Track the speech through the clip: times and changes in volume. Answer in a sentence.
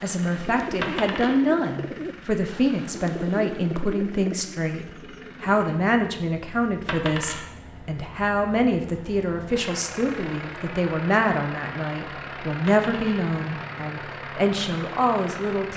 The speech can be heard from 0.0 to 15.7 s, at a steady volume.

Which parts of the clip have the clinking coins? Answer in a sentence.
You can hear the clinking coins from 0.8 to 1.4 s, from 6.8 to 7.5 s and from 12.7 to 13.2 s.